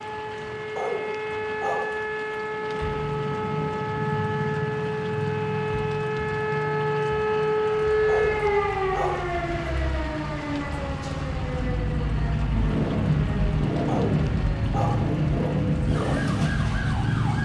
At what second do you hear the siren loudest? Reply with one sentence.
The volume of the siren peaks at 8 seconds.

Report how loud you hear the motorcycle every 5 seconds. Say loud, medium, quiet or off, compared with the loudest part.
medium, medium, loud, loud.